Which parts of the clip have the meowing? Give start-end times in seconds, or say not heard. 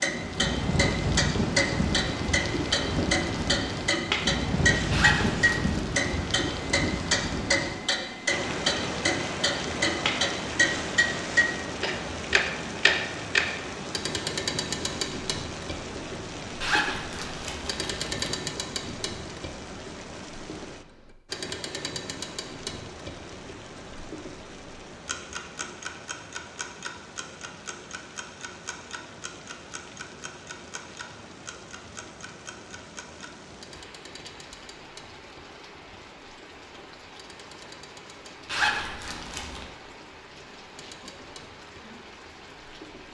not heard.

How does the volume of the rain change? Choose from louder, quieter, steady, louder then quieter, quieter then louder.
quieter.